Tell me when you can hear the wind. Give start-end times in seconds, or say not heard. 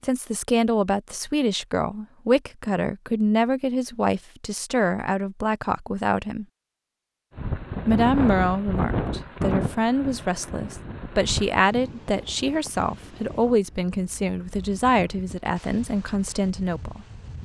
7.3-17.4.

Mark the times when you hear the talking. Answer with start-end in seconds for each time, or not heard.
0.0-6.5, 7.8-17.1.